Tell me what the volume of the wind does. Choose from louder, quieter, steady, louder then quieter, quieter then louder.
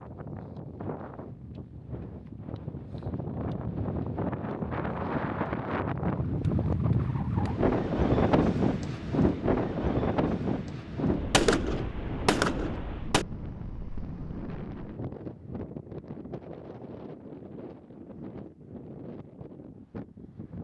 louder then quieter.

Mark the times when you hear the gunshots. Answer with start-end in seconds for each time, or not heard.
11.3-13.2.